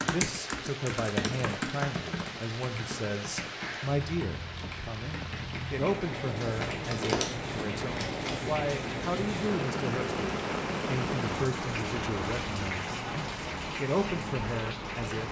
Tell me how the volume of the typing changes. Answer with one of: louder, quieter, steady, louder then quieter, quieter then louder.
quieter.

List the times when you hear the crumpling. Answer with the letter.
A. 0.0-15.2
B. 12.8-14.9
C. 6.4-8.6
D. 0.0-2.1
C.